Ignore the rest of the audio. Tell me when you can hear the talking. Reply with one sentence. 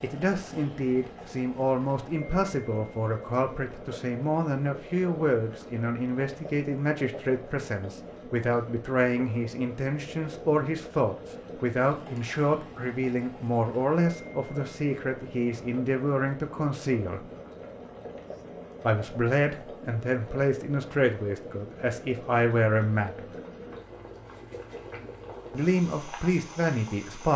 The talking can be heard from 0.0 to 17.2 s, from 18.9 to 23.3 s and from 25.5 to 27.3 s.